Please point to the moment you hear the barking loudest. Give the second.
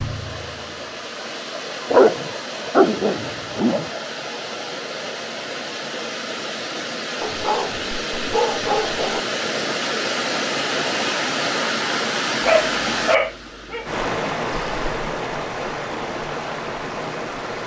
2 s.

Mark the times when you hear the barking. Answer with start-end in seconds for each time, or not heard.
1.9-3.9, 7.2-9.2, 12.4-13.9.